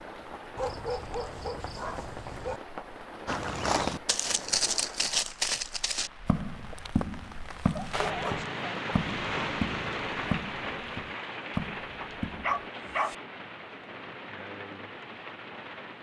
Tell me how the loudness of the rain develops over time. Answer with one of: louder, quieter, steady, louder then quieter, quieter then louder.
louder then quieter.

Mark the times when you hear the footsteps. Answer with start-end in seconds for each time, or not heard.
3.2-12.7.